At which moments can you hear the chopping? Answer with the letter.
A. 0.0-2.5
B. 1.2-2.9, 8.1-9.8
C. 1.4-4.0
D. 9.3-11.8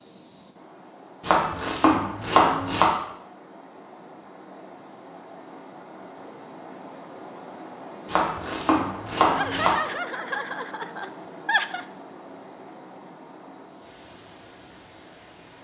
B.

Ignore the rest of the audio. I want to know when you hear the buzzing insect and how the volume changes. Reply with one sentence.
The buzzing insect can't be heard in this clip.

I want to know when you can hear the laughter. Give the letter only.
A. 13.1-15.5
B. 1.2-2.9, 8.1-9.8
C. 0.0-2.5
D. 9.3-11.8
D.